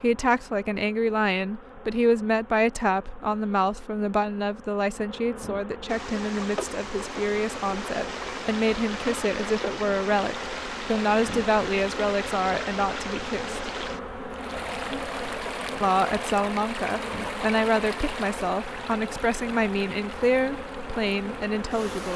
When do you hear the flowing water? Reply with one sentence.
The flowing water can be heard from 5.8 to 22.1 s.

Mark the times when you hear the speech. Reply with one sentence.
The speech can be heard from 0.0 to 13.6 s and from 15.8 to 22.1 s.